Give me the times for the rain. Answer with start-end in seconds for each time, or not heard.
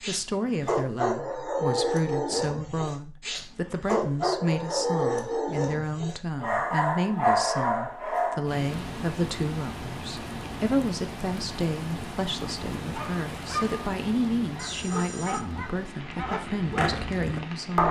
8.4-17.8.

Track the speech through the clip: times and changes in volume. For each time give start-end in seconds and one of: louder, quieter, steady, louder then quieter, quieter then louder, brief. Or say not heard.
0.1-17.8 steady.